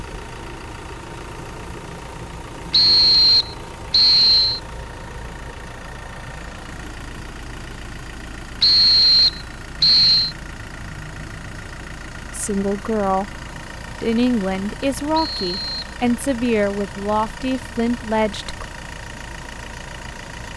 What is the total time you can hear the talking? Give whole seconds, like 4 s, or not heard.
6 s.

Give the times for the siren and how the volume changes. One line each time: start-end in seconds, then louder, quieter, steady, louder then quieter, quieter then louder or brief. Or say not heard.
not heard.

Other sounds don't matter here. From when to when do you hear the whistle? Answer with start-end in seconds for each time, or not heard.
2.7-4.6, 8.6-10.3, 15.2-15.9.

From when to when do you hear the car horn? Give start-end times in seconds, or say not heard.
not heard.